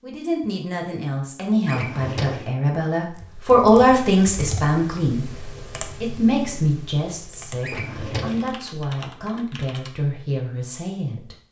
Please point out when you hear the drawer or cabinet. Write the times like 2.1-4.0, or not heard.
1.6-2.5, 7.6-8.5.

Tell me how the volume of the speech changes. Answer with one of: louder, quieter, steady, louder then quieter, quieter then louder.
louder then quieter.